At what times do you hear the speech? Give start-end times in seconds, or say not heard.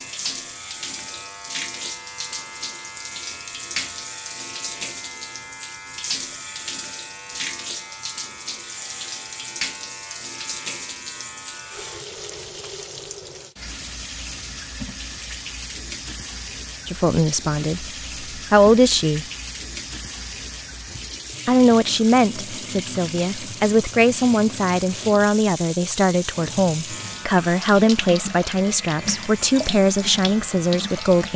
16.9-19.2, 21.4-31.3.